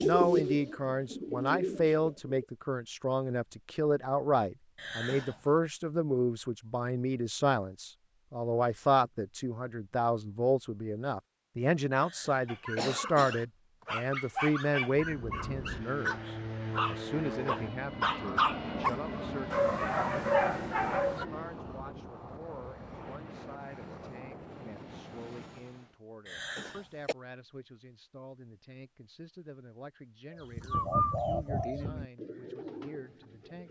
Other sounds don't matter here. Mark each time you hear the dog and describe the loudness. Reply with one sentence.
You can hear the dog from 12.4 to 21.2 s, getting louder.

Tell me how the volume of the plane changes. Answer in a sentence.
The volume of the plane goes down.